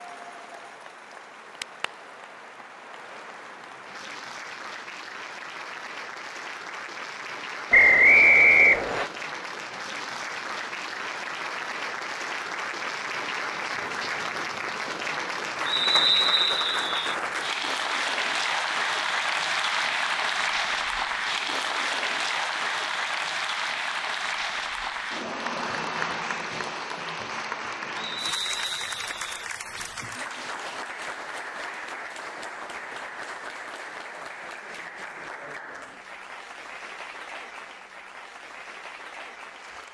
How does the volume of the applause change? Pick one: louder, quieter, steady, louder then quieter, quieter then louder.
louder then quieter.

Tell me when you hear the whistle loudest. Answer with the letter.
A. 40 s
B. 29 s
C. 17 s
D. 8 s
D.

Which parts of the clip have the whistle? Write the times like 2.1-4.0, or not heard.
7.7-9.1, 15.7-17.1, 27.9-29.4.